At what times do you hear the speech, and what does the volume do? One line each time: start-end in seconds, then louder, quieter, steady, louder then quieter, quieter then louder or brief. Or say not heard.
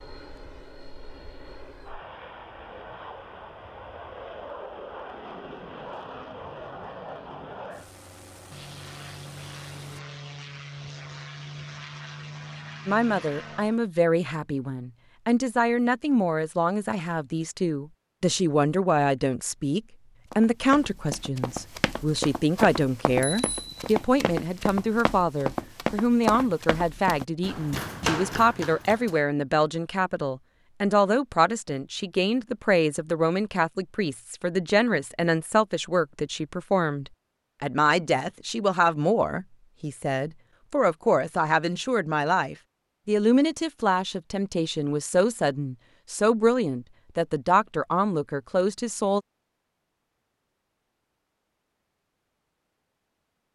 12.8-49.2 steady.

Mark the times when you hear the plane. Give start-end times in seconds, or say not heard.
0.0-13.8.